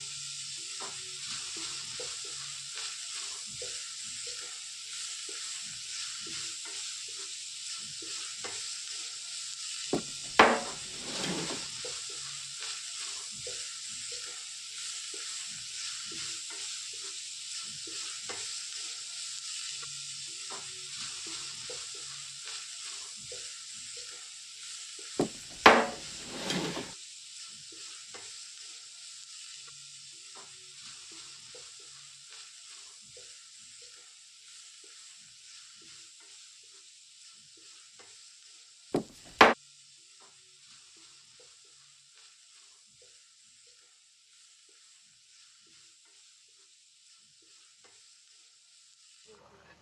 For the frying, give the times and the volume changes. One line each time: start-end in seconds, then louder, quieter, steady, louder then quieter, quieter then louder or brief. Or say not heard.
0.0-49.7 quieter.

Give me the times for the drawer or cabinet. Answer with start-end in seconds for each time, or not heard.
9.9-11.6, 25.1-26.9, 38.9-39.5.